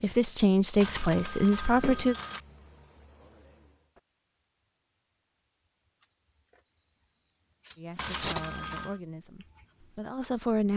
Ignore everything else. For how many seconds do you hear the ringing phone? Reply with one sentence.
The ringing phone can be heard for 3 seconds in total.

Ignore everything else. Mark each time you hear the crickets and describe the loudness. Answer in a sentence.
The crickets can be heard from 0.0 to 10.7 s, getting louder.